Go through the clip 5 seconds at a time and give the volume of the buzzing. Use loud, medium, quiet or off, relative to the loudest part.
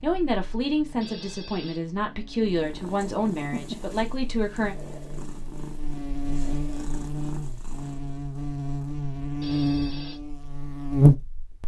quiet, medium, loud.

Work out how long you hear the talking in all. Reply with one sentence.
The talking can be heard for 5 seconds in total.